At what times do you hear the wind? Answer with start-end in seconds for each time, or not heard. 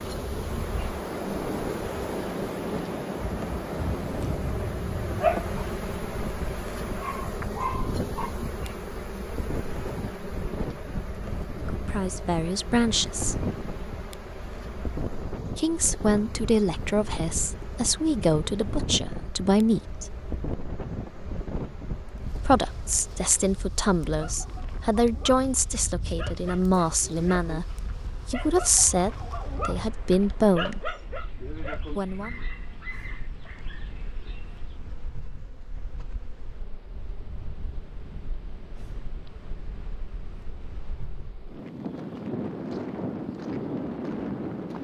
0.0-44.7.